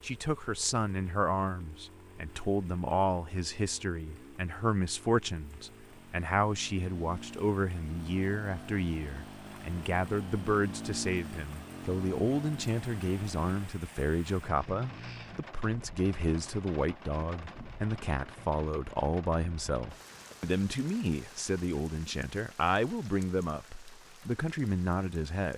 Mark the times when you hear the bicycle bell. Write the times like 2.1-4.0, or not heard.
not heard.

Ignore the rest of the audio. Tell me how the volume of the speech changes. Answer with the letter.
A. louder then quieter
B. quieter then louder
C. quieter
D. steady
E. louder
D.